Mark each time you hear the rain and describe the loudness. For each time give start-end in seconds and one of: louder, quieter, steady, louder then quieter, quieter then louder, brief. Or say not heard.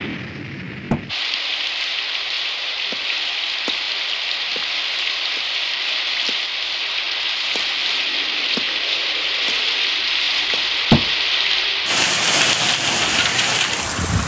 0.0-14.2 louder.